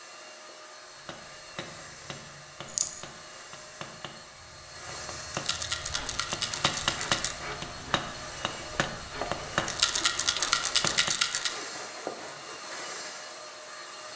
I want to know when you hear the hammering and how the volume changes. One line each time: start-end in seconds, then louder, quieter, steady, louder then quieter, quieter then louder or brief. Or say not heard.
1.1-11.2 louder.